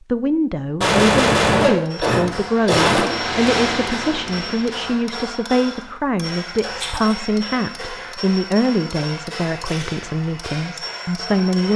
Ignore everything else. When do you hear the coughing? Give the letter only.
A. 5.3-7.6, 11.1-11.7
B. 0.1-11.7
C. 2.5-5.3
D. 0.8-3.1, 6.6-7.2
D.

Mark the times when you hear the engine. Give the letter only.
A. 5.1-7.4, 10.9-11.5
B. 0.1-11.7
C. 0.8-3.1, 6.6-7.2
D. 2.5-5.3
D.